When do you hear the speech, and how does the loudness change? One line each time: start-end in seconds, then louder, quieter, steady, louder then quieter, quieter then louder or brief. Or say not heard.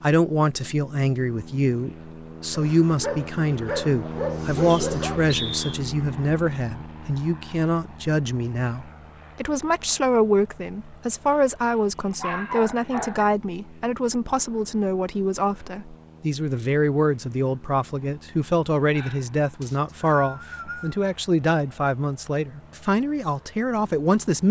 0.0-24.4 steady.